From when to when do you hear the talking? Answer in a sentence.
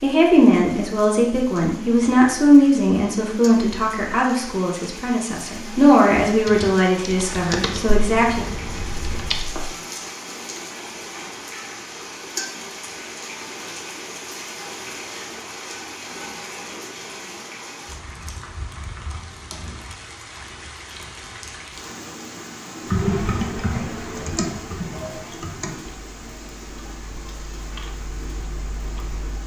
The talking can be heard from 0.0 to 8.4 s.